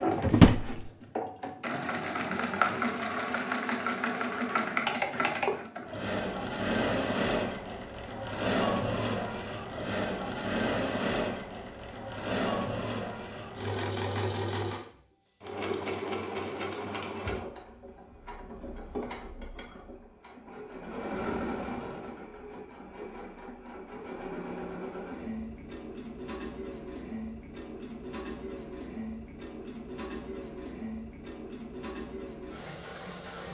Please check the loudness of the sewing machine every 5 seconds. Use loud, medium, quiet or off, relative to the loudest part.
loud, loud, loud, medium, medium, medium, medium.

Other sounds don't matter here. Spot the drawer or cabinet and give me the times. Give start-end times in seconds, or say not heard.
0.3-0.8.